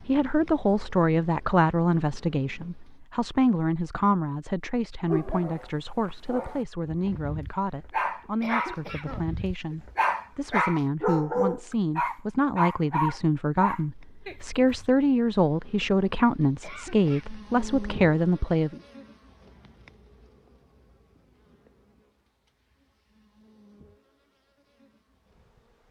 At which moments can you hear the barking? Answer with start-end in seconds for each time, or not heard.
5.0-14.9.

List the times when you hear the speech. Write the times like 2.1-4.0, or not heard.
0.1-18.8.